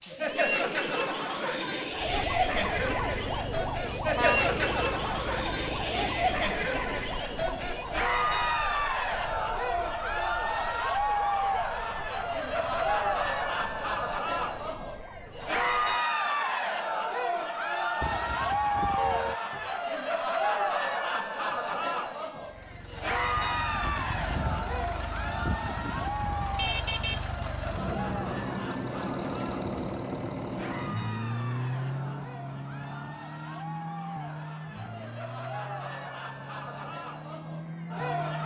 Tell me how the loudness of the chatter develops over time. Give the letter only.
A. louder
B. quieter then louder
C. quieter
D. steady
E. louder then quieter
C.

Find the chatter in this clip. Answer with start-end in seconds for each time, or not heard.
0.0-38.4.